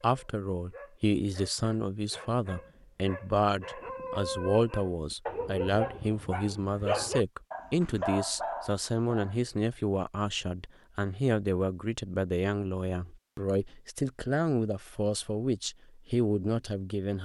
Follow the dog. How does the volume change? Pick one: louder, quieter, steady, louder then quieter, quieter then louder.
louder.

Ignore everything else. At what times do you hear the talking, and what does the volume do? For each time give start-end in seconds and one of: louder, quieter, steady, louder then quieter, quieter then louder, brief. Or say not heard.
0.0-17.2 steady.